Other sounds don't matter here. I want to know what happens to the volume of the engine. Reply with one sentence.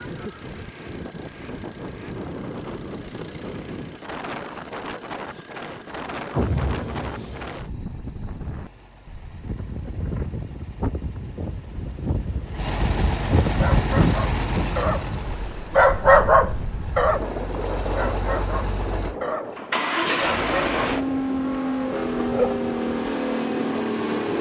The loudness of the engine goes up.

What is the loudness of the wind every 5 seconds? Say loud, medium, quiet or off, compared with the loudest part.
medium, medium, loud, medium, medium.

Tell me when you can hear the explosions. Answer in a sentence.
You can hear the explosions from 6.3 to 7.5 s.